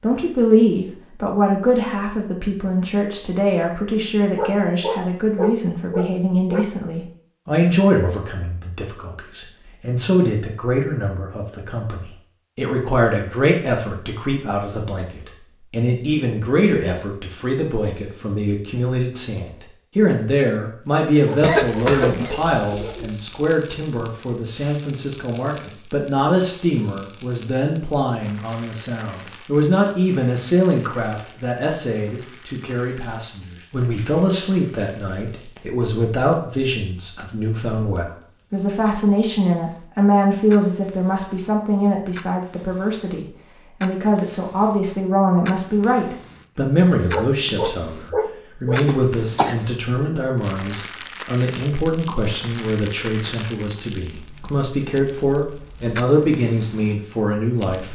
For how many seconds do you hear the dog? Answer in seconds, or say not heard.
6 s.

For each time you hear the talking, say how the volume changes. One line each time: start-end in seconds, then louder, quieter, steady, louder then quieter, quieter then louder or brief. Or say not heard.
0.0-57.9 steady.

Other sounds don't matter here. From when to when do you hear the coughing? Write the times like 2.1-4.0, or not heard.
21.4-23.1, 48.9-49.5.